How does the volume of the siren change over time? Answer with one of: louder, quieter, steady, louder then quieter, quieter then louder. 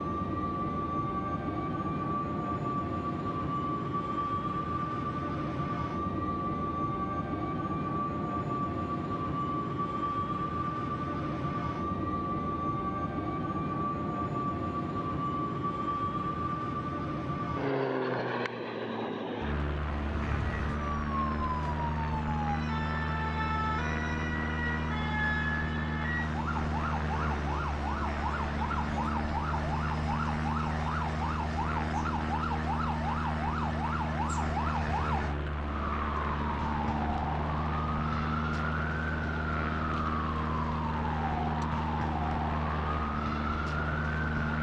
steady.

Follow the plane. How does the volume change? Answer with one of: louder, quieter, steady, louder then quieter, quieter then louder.
steady.